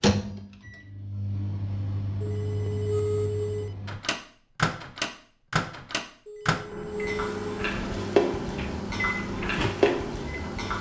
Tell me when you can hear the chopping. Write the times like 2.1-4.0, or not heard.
not heard.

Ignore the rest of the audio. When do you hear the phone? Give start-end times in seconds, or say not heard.
2.2-3.7, 6.2-7.7.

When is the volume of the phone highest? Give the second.
3 s.